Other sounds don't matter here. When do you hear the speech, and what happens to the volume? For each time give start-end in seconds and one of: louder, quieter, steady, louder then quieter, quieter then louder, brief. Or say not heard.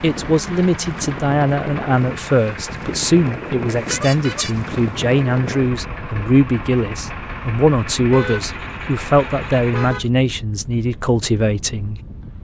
0.0-12.0 steady.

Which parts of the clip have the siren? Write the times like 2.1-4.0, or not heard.
not heard.